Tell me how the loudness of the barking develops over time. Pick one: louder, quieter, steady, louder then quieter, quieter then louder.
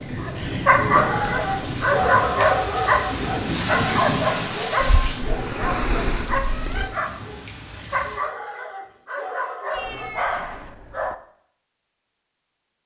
quieter.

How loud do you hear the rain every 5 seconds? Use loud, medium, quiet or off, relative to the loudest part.
loud, medium, off.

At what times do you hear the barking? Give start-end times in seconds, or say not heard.
0.1-10.1.